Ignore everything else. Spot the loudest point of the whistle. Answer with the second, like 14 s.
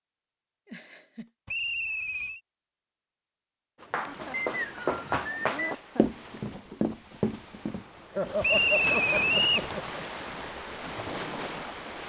9 s.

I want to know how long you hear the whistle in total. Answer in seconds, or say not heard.
4 s.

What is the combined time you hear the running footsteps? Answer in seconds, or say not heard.
6 s.